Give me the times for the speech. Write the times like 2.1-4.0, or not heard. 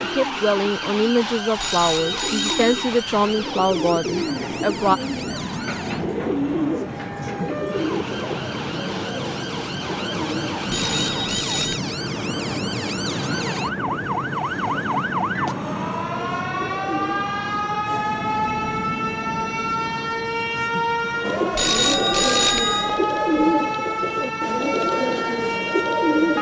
0.0-5.0.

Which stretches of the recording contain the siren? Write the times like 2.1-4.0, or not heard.
0.0-26.3.